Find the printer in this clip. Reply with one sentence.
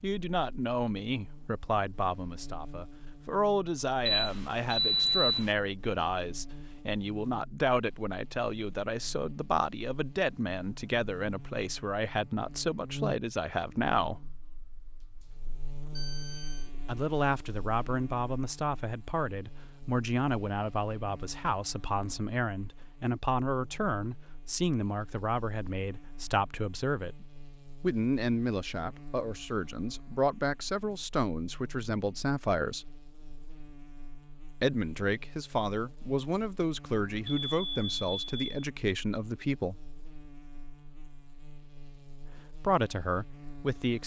You can't hear the printer here.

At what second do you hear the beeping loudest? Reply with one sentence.
The volume of the beeping peaks at 5 seconds.